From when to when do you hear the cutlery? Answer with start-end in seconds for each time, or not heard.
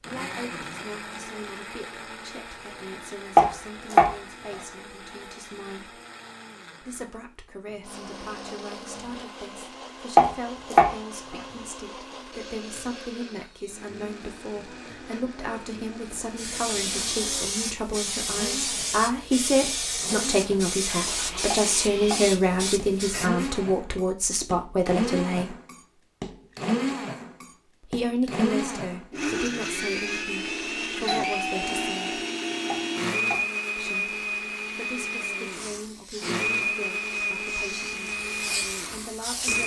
not heard.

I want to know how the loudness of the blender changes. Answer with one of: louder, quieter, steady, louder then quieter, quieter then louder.
louder.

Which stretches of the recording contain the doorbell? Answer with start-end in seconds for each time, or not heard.
31.1-32.1.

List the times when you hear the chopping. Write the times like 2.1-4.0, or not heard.
3.4-4.2, 10.2-10.9, 21.5-22.2, 32.7-33.5.